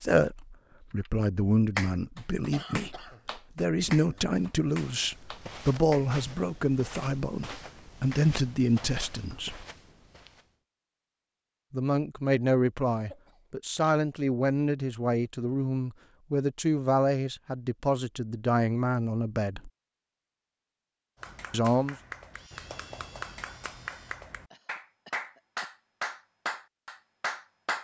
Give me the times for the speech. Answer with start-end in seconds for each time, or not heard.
0.0-9.7, 11.7-19.7, 21.5-21.9.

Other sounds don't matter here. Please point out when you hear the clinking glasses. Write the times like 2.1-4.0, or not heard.
not heard.